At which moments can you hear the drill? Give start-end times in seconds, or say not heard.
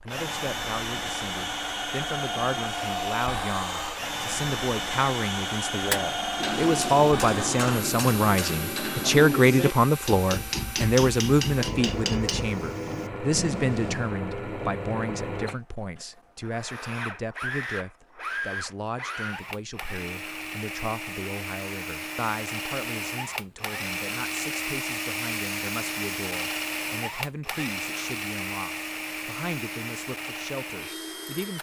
0.0-31.5.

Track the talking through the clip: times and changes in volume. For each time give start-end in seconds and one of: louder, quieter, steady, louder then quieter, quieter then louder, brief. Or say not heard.
0.0-31.5 louder then quieter.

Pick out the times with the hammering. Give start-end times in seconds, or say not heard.
5.7-14.2.